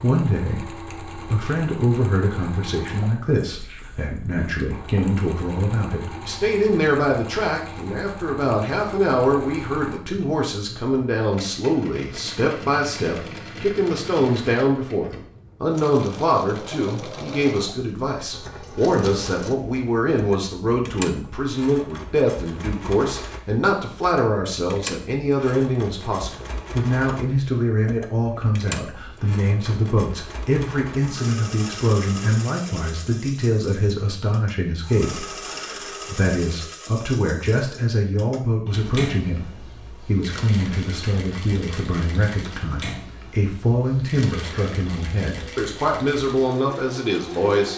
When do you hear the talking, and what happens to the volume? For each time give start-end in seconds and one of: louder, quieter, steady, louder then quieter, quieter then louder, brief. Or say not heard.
0.0-47.7 steady.